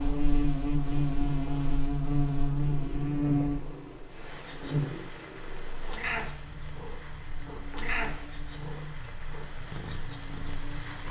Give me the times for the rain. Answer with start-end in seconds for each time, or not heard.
4.0-11.0.